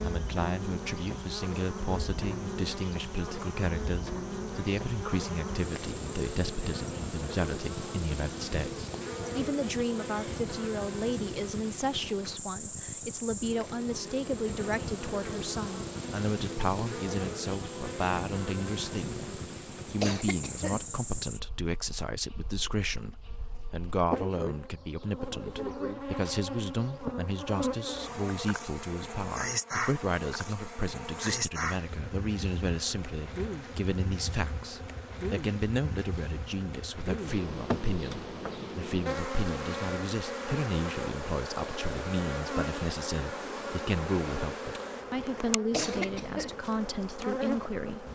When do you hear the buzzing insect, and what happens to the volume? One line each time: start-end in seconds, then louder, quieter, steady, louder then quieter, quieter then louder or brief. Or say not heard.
0.0-48.1 steady.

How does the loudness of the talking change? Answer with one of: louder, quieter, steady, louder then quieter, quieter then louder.
steady.